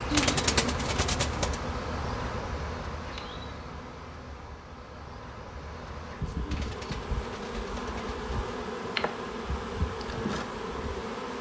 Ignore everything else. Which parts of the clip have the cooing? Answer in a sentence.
The cooing can be heard from 0.1 to 1.6 s and from 6.5 to 8.3 s.